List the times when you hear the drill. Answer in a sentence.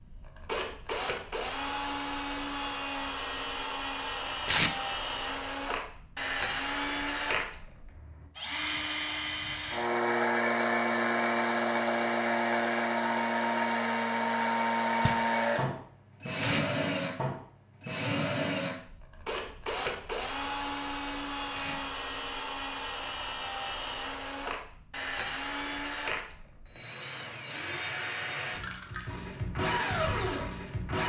You can hear the drill from 0.0 to 31.0 s.